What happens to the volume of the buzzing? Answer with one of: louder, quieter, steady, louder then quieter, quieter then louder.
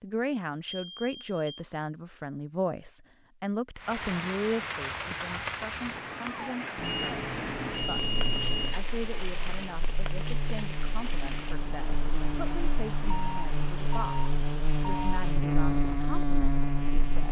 louder.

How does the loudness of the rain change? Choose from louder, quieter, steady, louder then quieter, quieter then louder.
quieter.